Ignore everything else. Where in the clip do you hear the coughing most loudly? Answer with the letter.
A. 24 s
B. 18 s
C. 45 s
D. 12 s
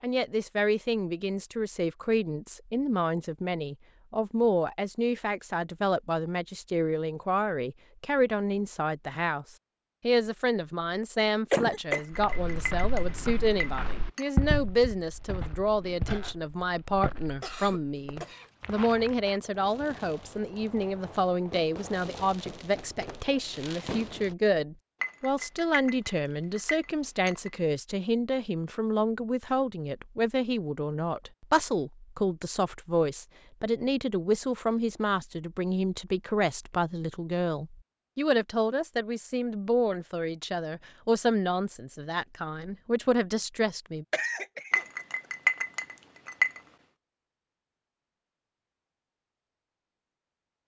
D.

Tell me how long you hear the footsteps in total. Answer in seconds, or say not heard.
7 s.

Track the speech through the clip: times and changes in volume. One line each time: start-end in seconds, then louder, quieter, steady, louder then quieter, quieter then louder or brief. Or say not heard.
0.0-44.0 steady.